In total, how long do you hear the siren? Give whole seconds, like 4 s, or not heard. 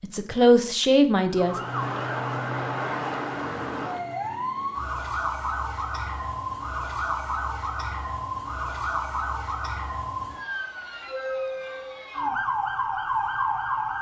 13 s.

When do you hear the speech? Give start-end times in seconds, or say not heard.
0.0-1.6.